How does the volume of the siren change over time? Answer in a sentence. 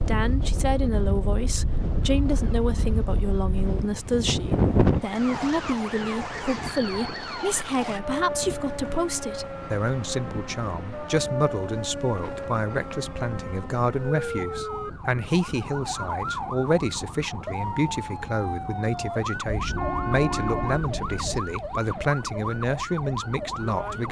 The volume of the siren stays about the same.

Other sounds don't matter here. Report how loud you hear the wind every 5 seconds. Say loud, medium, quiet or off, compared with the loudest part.
loud, quiet, quiet, quiet, quiet.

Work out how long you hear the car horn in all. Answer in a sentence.
You can hear the car horn for 2 seconds altogether.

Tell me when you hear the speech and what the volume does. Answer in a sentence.
You can hear the speech from 0.0 to 24.0 s, at a steady volume.